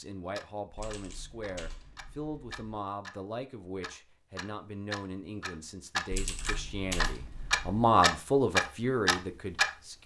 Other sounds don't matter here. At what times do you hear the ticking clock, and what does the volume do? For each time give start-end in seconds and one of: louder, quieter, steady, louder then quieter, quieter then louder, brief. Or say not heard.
0.3-3.2 brief
3.8-9.7 louder.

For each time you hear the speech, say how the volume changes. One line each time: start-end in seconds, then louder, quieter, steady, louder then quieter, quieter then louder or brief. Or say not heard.
0.0-10.0 louder.